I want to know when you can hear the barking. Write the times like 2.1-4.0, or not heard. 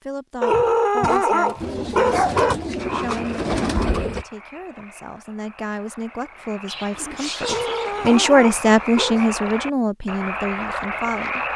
0.4-2.5, 7.4-9.3.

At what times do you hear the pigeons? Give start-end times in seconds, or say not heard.
1.6-4.2, 6.7-8.2.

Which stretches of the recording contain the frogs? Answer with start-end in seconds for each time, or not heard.
2.8-11.5.